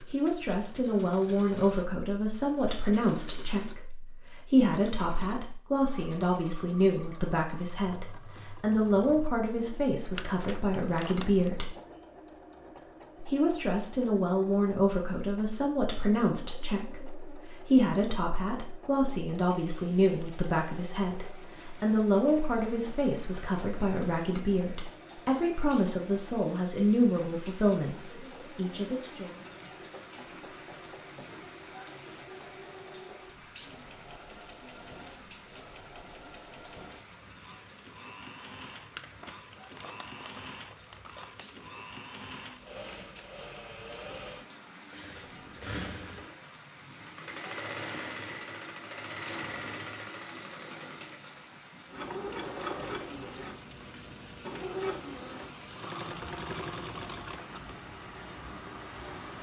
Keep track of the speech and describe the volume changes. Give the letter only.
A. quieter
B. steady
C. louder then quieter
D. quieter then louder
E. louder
B.